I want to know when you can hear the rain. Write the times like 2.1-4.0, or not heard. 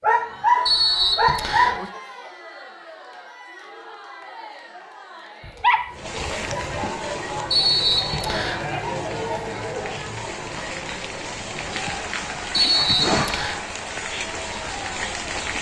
5.9-15.5.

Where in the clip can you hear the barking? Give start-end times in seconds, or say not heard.
0.0-1.9, 5.4-7.0, 11.7-13.2.